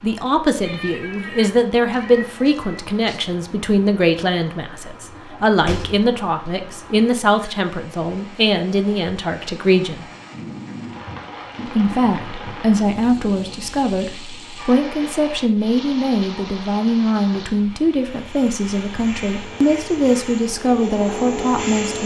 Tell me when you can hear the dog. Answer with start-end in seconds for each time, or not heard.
not heard.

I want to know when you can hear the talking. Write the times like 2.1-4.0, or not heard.
0.0-10.1, 11.7-22.0.